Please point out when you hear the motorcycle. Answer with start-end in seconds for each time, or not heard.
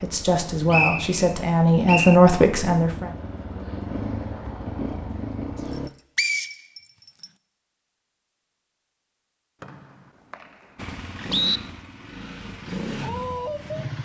0.0-5.9, 10.8-14.0.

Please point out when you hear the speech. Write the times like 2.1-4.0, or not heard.
0.0-3.1.